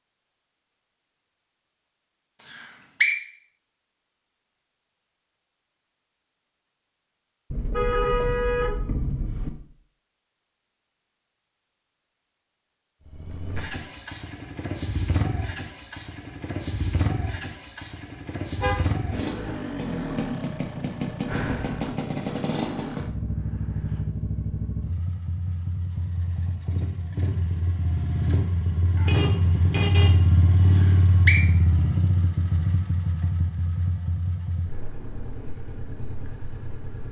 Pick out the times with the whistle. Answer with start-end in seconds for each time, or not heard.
2.4-3.1, 30.6-31.4.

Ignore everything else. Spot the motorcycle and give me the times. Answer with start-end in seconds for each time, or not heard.
13.1-37.0.